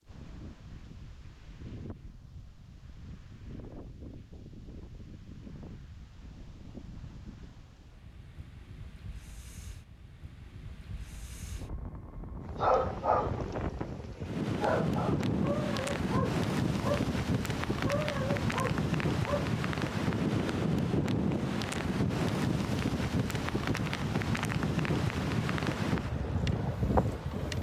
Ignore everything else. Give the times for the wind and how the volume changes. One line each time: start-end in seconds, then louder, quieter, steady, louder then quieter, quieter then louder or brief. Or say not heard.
0.0-27.5 louder.